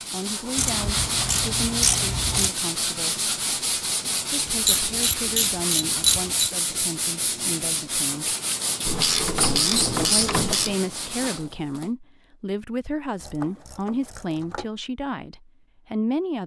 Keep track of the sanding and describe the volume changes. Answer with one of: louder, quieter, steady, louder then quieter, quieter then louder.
steady.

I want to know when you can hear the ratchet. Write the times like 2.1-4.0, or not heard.
0.6-2.5, 4.5-6.5, 8.8-10.8, 13.2-14.7.